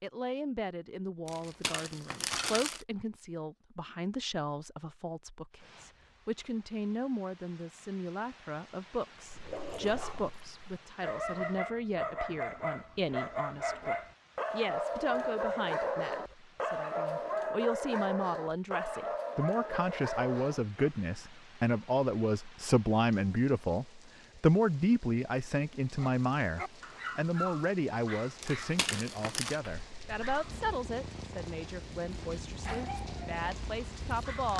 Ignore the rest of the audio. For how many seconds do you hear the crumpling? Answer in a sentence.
You can hear the crumpling for 3 seconds altogether.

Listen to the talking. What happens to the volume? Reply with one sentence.
The loudness of the talking goes up, then down.